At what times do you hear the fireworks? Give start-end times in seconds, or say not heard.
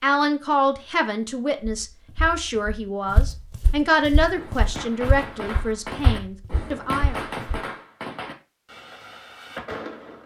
4.3-10.2.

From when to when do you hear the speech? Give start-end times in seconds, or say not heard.
0.0-7.2.